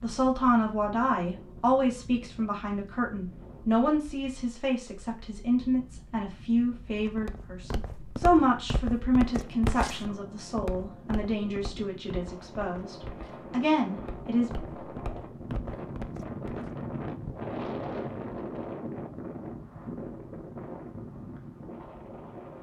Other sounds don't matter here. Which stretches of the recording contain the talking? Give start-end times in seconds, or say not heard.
0.0-14.5.